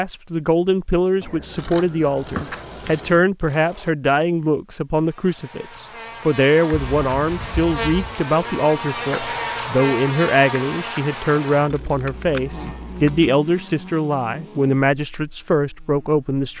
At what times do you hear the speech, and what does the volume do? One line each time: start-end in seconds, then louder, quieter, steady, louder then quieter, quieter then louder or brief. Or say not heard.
0.0-16.5 steady.